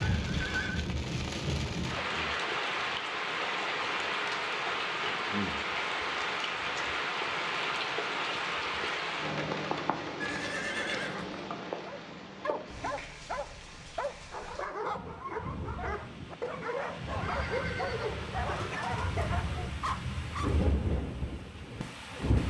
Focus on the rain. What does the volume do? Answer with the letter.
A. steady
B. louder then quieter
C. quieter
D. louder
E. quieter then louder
E.